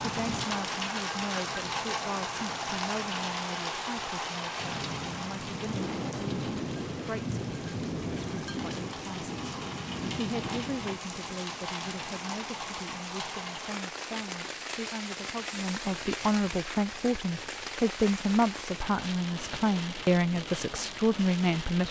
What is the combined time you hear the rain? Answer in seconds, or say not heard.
22 s.